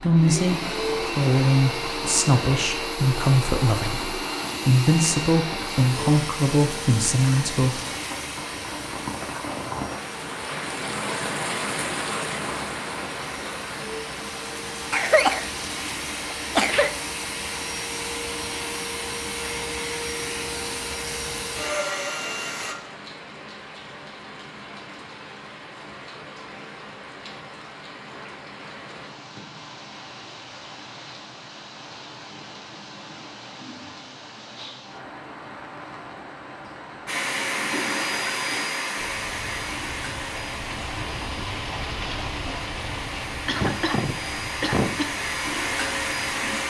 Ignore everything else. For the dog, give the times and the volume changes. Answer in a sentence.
You can't hear the dog here.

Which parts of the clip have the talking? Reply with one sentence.
You can hear the talking from 0.0 to 7.8 s.